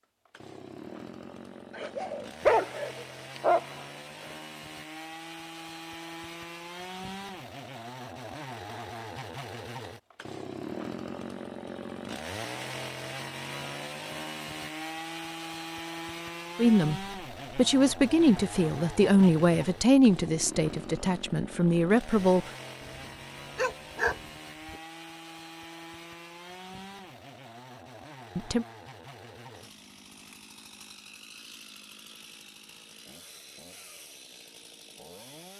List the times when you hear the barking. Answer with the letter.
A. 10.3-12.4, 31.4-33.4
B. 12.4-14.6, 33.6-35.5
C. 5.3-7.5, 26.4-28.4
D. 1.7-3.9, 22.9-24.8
D.